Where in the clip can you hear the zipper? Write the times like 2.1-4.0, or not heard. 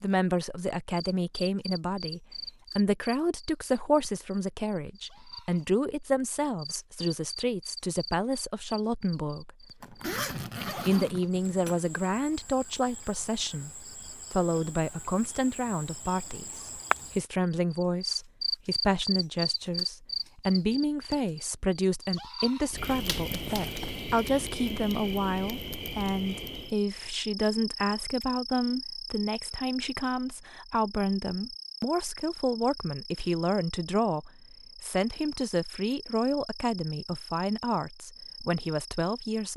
9.8-11.8, 23.1-24.1.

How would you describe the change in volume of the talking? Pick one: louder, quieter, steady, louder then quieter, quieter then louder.
steady.